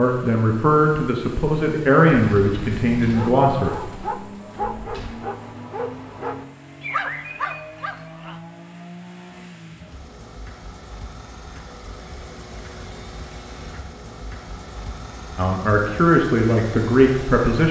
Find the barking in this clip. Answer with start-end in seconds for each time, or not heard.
3.0-8.4.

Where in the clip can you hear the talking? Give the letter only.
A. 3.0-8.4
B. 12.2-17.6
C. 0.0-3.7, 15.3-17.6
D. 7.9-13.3
C.